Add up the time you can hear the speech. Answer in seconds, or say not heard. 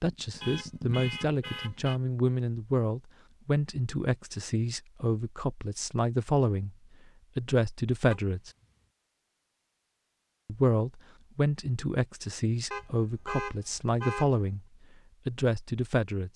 13 s.